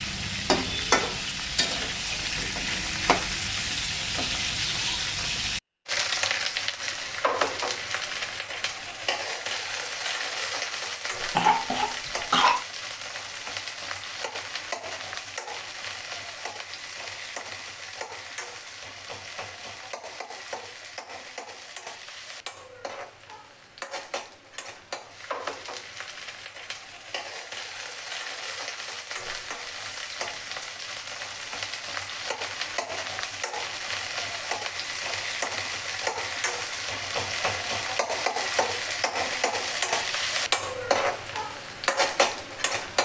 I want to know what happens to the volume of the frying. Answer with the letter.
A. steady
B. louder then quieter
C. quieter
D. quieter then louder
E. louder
D.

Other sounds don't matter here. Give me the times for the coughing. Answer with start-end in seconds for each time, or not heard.
11.3-12.7.